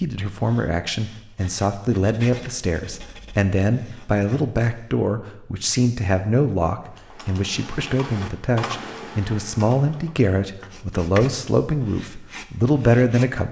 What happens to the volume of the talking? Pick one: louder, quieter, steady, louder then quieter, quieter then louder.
steady.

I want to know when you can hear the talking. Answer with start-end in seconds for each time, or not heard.
0.0-13.4.